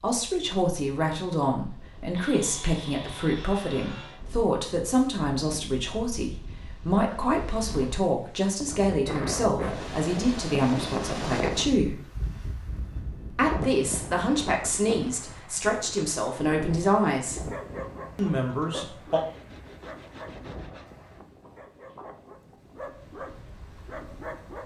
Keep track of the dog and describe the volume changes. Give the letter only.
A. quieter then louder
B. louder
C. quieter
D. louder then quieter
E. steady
A.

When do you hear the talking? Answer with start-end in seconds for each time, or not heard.
0.0-12.0, 13.3-17.5, 18.1-19.2.